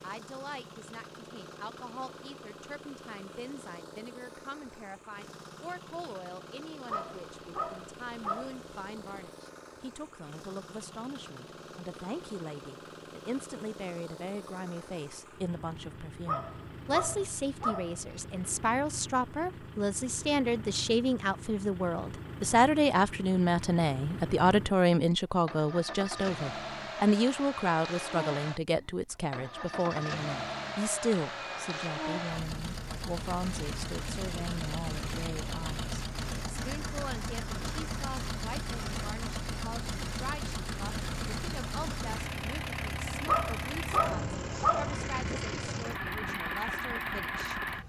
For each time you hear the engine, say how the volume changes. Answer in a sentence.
You can hear the engine from 0.0 to 47.8 s, getting louder.